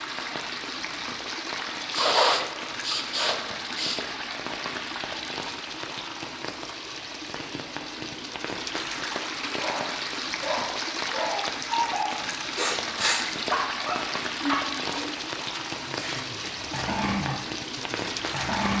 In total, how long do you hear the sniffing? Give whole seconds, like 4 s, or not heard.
3 s.